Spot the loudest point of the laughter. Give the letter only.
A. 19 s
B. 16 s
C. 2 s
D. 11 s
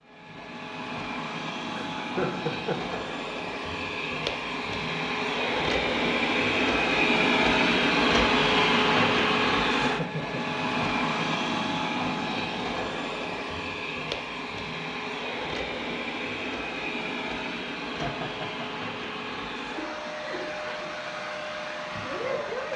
C.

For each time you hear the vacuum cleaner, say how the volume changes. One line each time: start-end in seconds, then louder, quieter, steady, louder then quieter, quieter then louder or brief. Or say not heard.
0.0-22.7 louder then quieter.